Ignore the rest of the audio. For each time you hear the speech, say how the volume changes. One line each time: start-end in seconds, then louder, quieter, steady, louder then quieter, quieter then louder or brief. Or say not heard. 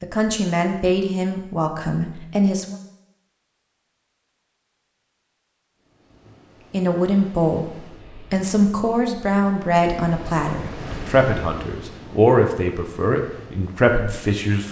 0.0-2.8 brief
6.7-14.6 steady.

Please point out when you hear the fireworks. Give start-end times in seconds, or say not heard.
not heard.